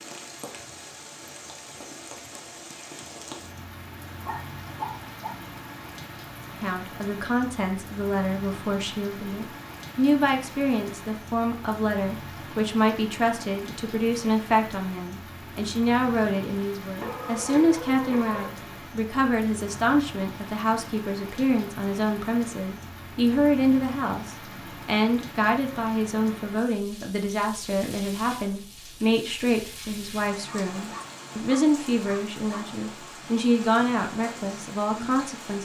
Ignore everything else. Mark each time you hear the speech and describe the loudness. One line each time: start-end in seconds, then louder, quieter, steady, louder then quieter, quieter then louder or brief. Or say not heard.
6.6-35.6 steady.